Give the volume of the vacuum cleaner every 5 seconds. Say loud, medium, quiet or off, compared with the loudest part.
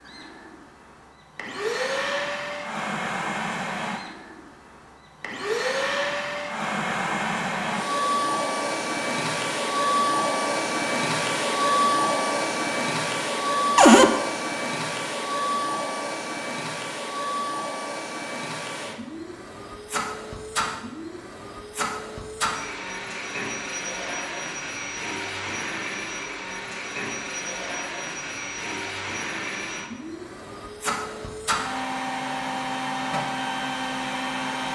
medium, loud, loud, medium, medium, medium, medium.